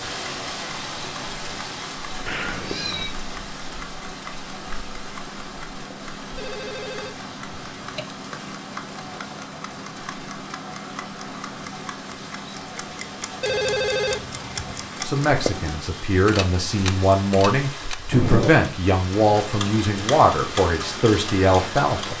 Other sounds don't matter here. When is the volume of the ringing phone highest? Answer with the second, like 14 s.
14 s.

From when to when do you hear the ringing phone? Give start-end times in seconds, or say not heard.
6.3-8.1, 13.4-14.9.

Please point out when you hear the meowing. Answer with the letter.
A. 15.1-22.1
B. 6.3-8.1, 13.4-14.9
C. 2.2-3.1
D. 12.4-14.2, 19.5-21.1
C.